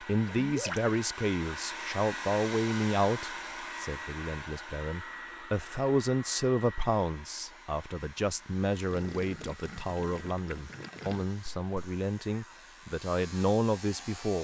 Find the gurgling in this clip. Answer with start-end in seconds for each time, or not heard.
0.2-0.9, 8.9-11.2.